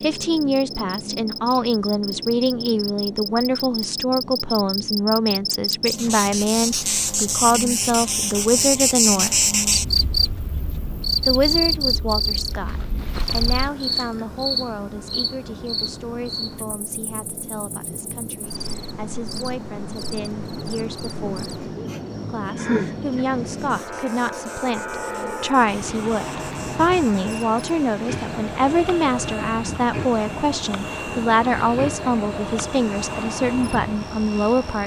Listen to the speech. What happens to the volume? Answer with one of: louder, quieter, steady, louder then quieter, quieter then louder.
quieter then louder.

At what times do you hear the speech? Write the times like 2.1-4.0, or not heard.
0.0-9.3, 11.2-21.5, 22.2-34.8.